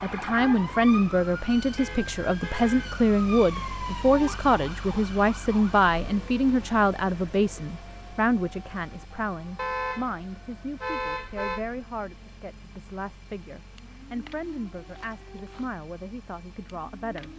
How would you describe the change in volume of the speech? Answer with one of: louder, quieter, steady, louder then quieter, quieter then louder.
quieter.